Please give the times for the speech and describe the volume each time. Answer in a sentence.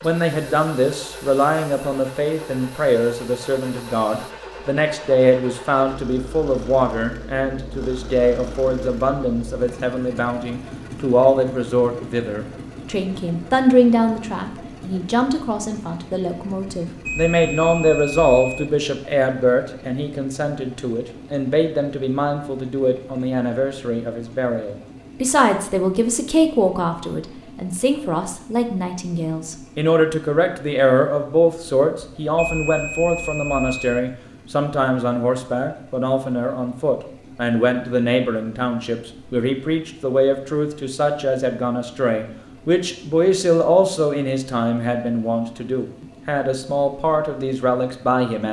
The speech can be heard from 0.0 to 48.4 s, at a steady volume.